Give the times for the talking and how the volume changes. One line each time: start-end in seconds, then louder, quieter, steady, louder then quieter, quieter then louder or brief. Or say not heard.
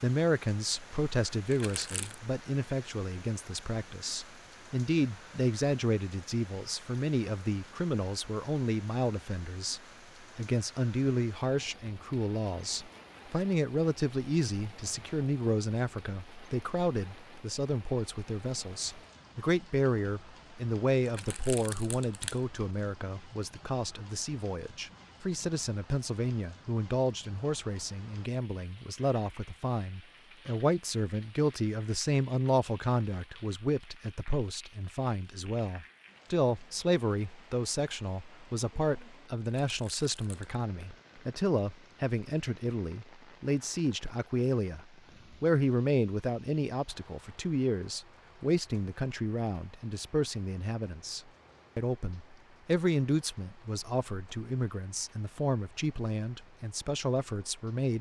0.0-57.9 steady.